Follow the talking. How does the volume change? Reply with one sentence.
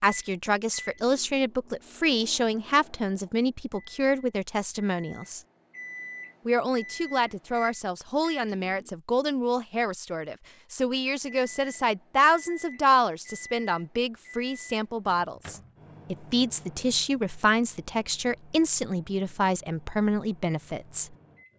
The loudness of the talking stays about the same.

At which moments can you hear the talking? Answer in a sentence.
The talking can be heard from 0.0 to 5.4 s and from 6.5 to 21.1 s.